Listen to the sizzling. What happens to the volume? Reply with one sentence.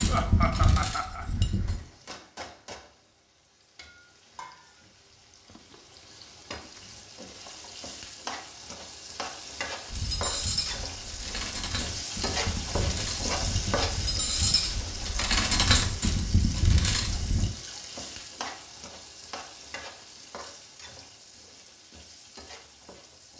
The loudness of the sizzling goes up, then down.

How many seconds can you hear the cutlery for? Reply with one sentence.
The cutlery can be heard for 9 seconds in total.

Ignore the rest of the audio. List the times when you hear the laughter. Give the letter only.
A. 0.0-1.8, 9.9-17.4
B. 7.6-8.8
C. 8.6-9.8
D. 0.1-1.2
D.